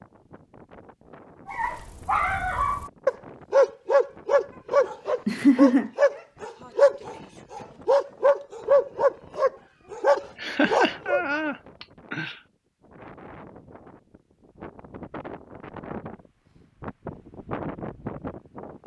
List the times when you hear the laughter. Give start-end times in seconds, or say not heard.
5.2-5.9, 10.4-12.3.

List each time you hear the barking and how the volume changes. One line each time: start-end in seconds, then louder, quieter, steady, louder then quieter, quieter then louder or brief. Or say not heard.
1.4-11.2 steady.